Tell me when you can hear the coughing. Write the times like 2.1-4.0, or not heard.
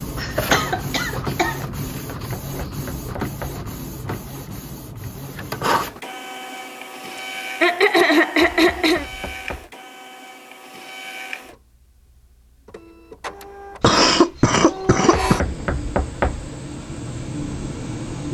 0.1-1.6, 7.2-9.1, 13.8-15.4.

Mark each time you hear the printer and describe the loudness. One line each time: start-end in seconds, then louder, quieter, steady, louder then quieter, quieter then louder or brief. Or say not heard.
0.0-18.2 quieter then louder.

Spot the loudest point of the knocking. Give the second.
16 s.